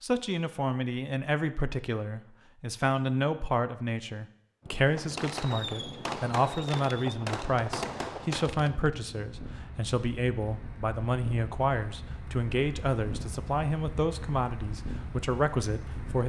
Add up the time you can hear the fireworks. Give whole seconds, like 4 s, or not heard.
4 s.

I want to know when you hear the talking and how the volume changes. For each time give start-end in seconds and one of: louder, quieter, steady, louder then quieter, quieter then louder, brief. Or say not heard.
0.0-16.2 steady.